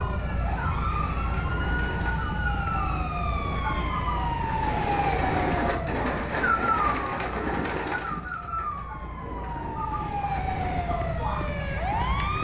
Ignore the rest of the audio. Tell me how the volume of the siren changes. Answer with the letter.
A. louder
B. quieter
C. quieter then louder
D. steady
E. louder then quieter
C.